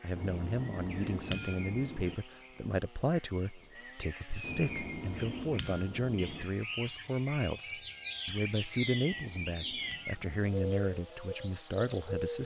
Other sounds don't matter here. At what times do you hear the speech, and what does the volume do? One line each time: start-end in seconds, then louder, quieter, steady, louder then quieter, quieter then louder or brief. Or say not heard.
0.0-12.4 steady.